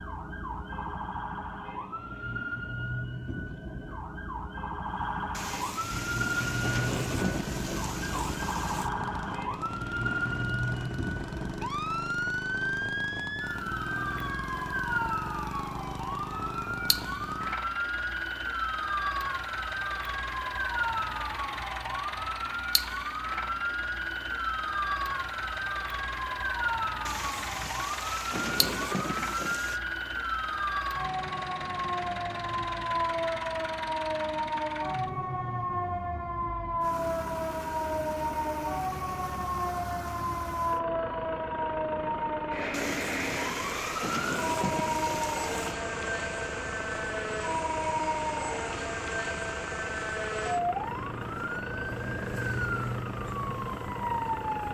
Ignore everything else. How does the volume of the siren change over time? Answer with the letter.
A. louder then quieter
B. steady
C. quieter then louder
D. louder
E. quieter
B.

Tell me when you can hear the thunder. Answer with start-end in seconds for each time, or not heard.
5.3-8.9, 27.1-29.8, 42.7-45.8.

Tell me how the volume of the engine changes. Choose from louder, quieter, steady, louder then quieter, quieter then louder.
steady.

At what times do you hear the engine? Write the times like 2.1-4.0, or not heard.
5.8-54.6.